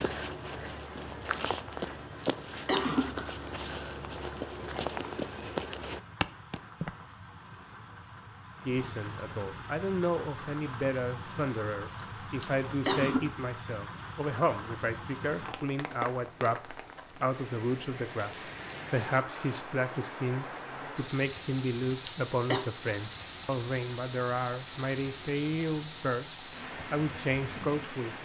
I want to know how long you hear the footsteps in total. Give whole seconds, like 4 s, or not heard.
7 s.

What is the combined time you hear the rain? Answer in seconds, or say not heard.
28 s.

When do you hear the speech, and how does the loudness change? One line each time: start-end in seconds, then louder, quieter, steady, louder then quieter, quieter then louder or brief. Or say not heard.
8.7-28.1 steady.